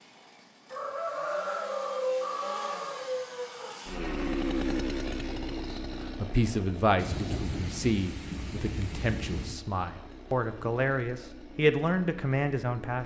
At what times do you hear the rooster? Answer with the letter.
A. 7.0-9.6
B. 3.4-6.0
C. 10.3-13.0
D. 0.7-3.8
D.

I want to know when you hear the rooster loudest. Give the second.
2 s.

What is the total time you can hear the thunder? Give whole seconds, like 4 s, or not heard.
3 s.